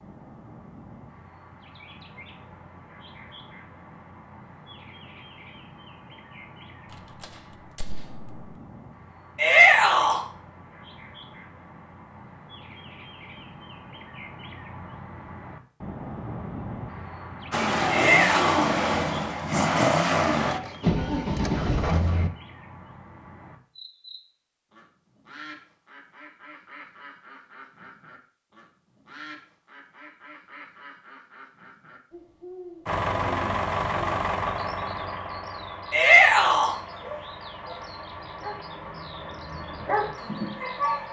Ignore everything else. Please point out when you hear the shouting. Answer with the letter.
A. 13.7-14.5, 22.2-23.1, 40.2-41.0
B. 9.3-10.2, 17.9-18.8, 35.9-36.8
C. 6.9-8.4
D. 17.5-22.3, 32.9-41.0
B.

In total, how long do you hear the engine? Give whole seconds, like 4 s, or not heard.
13 s.